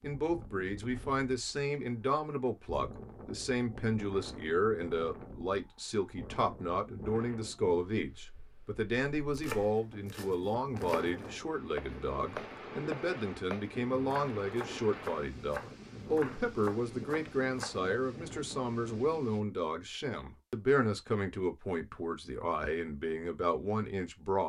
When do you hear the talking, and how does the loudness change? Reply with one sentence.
You can hear the talking from 0.0 to 24.4 s, at a steady volume.